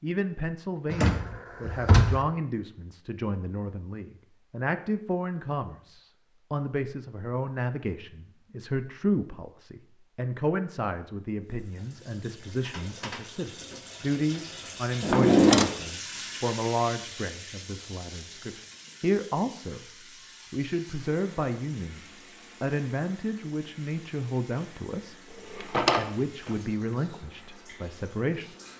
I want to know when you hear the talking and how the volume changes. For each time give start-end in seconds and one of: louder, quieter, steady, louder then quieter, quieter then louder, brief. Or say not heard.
0.0-19.9 steady
20.5-28.6 steady.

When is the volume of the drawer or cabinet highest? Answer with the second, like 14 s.
15 s.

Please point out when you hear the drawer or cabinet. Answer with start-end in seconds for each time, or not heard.
0.9-2.2, 15.0-15.7, 25.5-26.5.